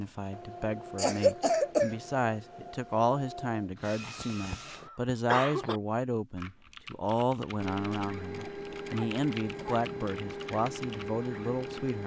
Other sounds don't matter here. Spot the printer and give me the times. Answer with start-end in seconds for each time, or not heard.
0.0-4.9, 7.6-12.0.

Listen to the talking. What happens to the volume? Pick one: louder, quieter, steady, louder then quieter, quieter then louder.
steady.